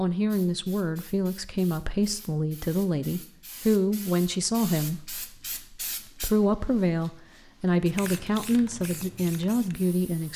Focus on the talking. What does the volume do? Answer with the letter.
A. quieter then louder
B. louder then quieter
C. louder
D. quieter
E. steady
E.